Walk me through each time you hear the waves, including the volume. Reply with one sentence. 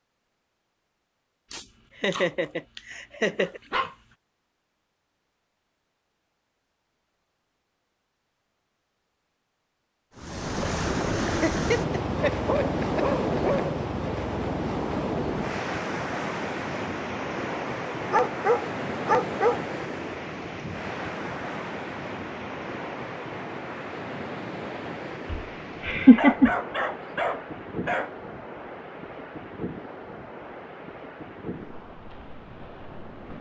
You can hear the waves from 10.2 to 33.3 s, getting quieter.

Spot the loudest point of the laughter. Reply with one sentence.
The volume of the laughter peaks at 26 seconds.